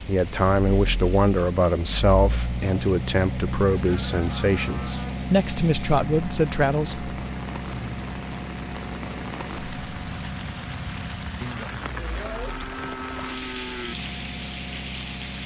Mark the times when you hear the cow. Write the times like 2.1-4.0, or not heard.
3.7-5.2, 11.9-13.9.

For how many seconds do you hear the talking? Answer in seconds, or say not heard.
7 s.